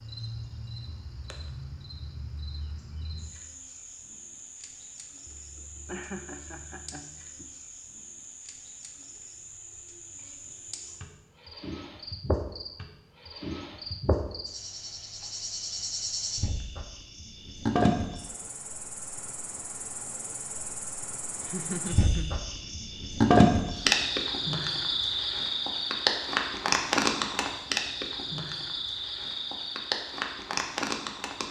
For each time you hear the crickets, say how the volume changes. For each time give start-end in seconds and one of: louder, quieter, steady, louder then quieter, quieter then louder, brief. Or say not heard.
0.0-31.4 louder.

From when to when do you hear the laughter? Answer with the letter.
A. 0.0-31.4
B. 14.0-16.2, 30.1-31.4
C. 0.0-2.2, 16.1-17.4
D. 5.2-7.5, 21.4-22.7
D.